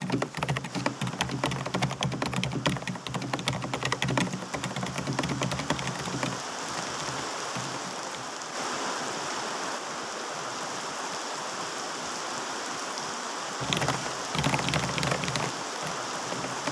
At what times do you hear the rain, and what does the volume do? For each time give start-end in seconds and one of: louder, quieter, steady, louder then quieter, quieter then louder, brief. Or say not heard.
0.0-16.6 louder.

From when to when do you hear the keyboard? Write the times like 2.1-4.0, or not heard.
0.0-8.2, 13.6-16.6.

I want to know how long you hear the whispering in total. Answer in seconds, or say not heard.
not heard.